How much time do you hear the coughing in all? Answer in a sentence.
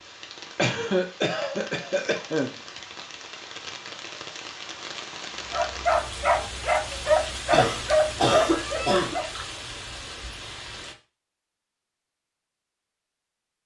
You can hear the coughing for 4 seconds altogether.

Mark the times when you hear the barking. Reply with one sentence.
The barking can be heard from 5.5 to 9.3 s.